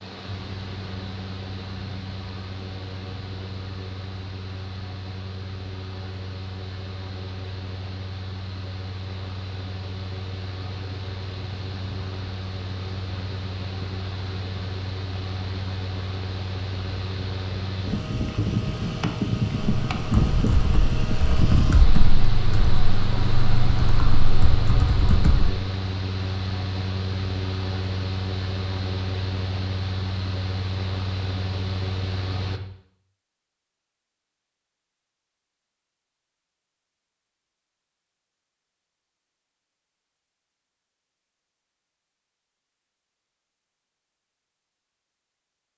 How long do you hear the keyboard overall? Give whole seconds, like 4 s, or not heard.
6 s.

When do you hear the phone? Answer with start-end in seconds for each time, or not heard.
not heard.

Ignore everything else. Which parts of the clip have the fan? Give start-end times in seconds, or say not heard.
0.0-32.6.